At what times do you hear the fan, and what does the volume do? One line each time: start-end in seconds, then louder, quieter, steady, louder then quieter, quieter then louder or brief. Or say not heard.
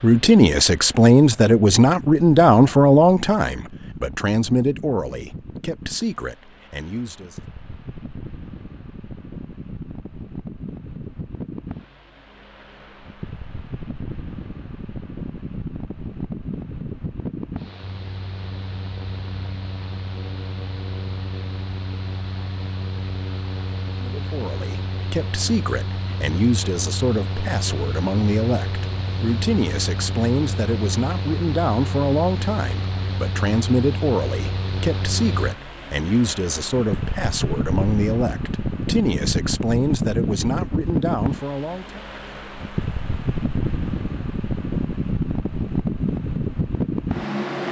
0.0-47.6 louder.